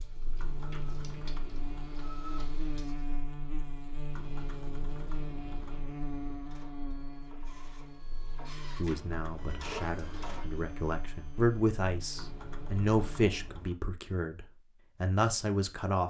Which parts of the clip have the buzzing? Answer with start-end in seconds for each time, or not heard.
0.0-13.6.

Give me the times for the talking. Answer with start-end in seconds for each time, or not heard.
8.8-16.0.